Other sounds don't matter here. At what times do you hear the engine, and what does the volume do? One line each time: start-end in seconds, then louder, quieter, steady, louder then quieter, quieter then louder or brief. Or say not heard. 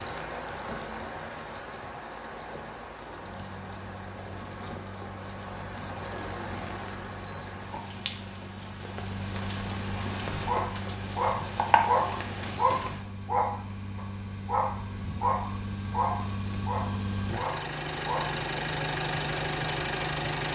3.1-20.5 louder.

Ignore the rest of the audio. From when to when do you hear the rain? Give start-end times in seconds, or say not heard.
0.0-13.1.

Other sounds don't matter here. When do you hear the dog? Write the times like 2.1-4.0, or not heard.
9.9-18.3.